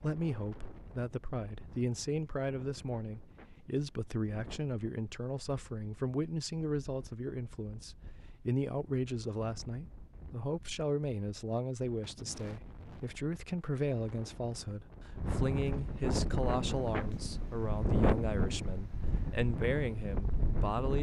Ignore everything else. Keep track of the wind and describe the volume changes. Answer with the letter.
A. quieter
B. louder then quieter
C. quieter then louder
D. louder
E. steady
D.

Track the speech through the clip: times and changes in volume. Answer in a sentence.
The speech can be heard from 0.0 to 20.9 s, at a steady volume.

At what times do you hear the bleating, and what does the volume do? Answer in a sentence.
The bleating can't be heard in this clip.